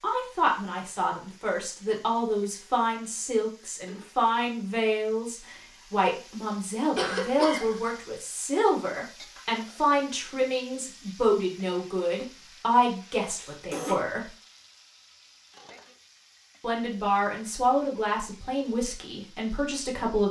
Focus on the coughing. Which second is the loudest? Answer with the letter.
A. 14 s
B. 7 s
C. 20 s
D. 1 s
B.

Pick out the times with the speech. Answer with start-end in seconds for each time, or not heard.
0.0-14.3, 16.6-20.2.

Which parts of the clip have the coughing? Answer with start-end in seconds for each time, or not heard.
7.0-7.8, 13.2-13.9.